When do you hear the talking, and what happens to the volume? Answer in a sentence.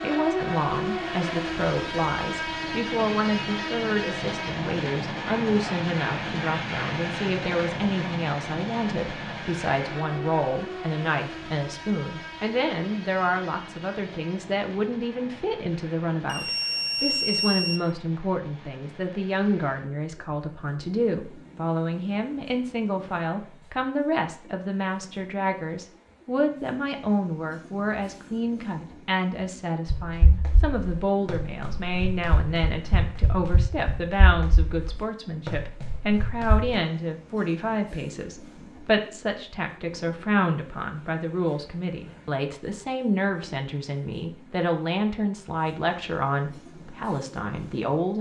You can hear the talking from 0.0 to 48.1 s, at a steady volume.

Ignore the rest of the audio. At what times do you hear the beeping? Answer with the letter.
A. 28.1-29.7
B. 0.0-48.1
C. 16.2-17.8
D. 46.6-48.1
C.